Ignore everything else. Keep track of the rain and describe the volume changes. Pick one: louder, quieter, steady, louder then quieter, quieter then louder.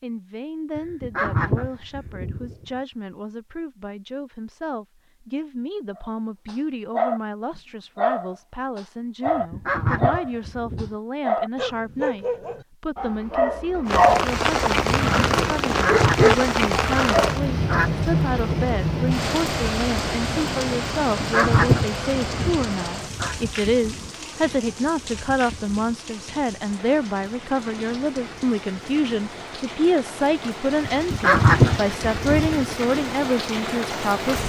quieter then louder.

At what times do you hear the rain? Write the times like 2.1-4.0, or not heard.
13.8-34.4.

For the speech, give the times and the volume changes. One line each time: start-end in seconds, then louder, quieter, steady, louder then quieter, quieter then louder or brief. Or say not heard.
0.0-34.4 louder.